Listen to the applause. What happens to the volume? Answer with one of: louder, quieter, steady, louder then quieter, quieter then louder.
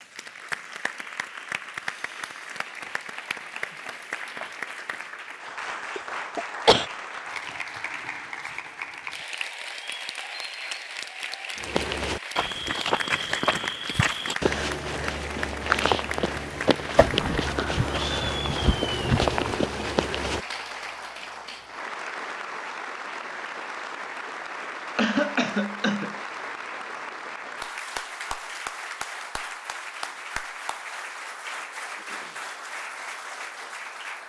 steady.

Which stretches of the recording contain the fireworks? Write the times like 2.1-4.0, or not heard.
not heard.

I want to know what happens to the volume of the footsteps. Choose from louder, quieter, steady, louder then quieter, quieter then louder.
steady.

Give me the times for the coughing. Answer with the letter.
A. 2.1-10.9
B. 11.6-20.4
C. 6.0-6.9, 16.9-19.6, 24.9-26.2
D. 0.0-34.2
C.